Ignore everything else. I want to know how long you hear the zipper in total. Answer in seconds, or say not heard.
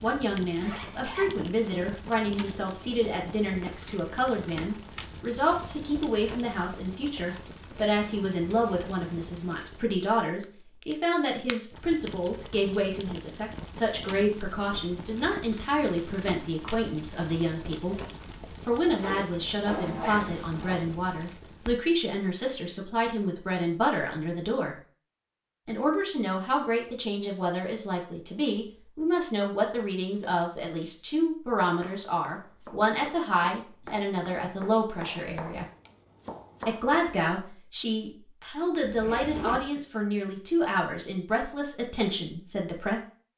4 s.